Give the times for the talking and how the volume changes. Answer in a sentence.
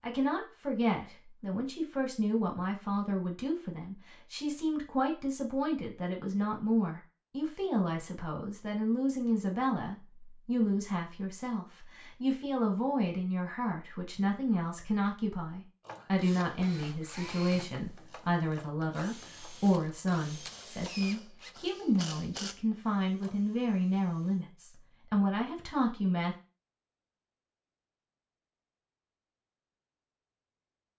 The talking can be heard from 0.0 to 26.4 s, at a steady volume.